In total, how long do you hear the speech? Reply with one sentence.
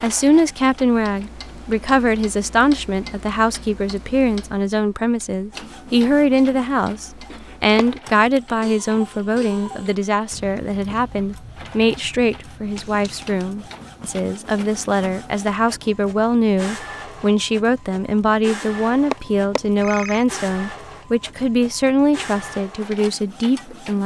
The speech can be heard for 24 seconds in total.